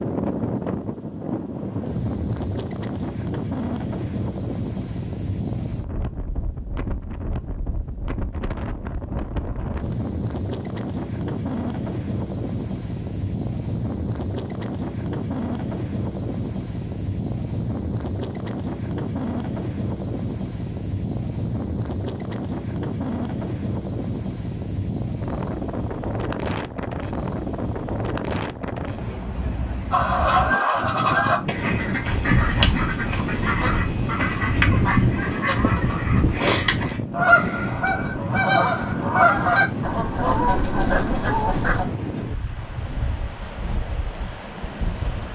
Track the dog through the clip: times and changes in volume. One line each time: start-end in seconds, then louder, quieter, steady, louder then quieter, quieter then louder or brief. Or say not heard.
not heard.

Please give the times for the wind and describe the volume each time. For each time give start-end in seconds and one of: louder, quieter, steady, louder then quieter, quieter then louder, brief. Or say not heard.
0.0-45.3 steady.